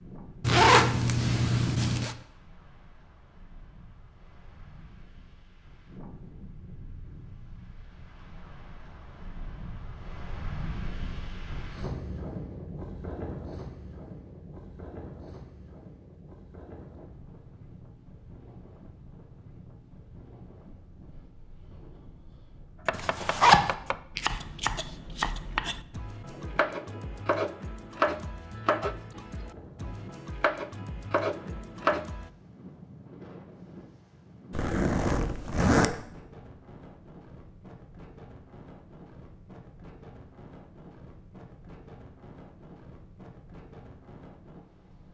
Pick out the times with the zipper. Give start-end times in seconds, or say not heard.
0.4-2.1, 22.9-23.8, 34.5-36.0.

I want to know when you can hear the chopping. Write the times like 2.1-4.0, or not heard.
22.9-32.3.